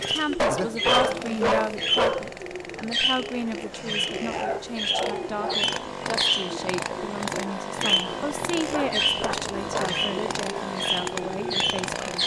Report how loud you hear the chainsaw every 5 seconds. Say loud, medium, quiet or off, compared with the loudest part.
medium, loud, loud.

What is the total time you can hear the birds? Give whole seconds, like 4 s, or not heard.
12 s.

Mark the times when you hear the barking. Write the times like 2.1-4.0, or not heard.
0.3-2.3, 4.2-5.7, 8.7-10.1.